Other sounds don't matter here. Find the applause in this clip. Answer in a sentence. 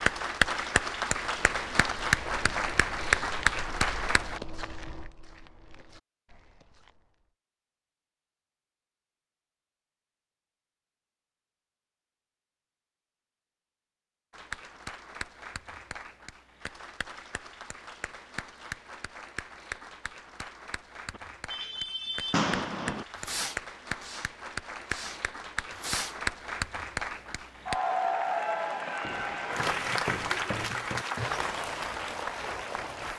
The applause can be heard from 0.0 to 4.4 s and from 14.3 to 33.1 s.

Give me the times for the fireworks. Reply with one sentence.
The fireworks can be heard from 21.1 to 26.1 s.